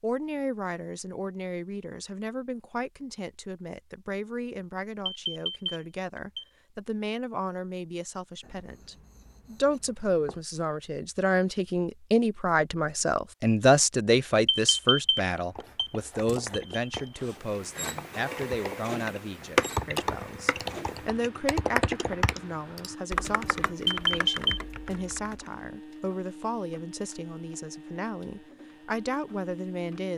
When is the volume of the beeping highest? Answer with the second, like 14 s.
24 s.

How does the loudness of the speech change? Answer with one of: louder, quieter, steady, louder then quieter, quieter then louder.
louder then quieter.